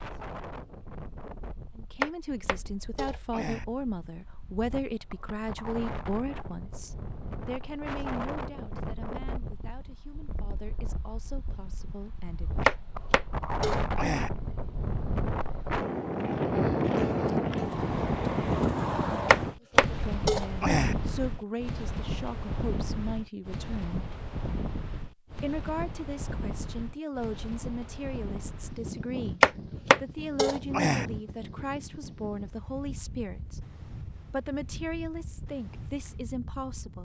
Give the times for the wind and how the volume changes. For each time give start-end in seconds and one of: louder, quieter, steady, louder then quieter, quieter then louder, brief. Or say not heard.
0.0-36.9 louder then quieter.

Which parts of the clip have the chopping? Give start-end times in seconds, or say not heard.
2.0-3.6, 12.7-14.3, 19.3-20.9, 29.4-31.1.